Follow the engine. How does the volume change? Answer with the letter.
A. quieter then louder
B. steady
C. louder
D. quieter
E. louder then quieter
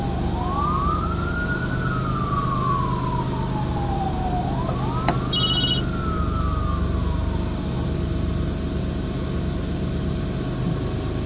B.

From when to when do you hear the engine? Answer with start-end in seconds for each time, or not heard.
0.0-11.2.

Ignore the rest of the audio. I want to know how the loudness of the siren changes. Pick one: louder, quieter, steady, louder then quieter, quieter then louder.
quieter.